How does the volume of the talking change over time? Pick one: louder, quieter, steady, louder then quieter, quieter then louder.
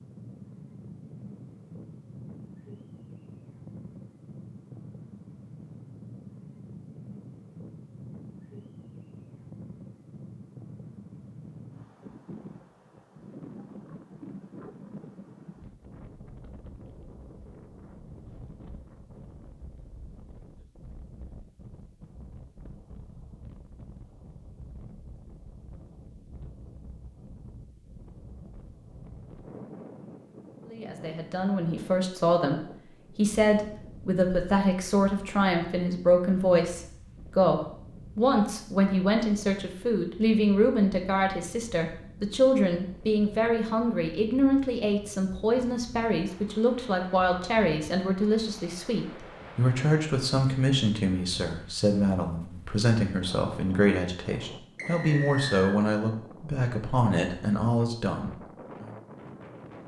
steady.